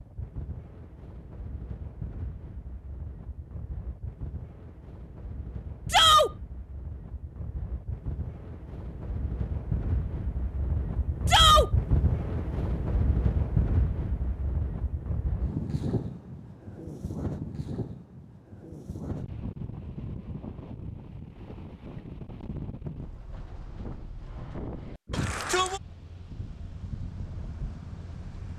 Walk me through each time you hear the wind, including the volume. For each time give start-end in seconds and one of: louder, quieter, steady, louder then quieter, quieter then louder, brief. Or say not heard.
0.0-28.5 louder then quieter.